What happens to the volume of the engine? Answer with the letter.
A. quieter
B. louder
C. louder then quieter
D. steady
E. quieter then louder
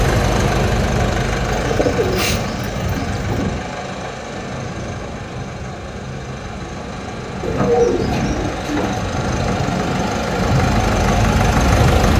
E.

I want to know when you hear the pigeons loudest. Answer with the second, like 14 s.
8 s.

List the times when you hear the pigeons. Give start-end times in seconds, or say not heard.
1.5-3.5, 7.4-9.0.